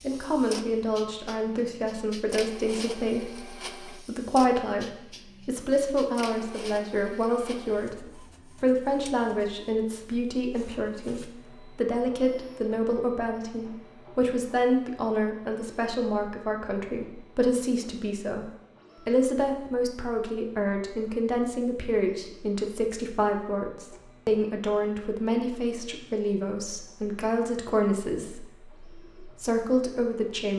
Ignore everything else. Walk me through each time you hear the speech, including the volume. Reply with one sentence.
You can hear the speech from 0.0 to 30.5 s, at a steady volume.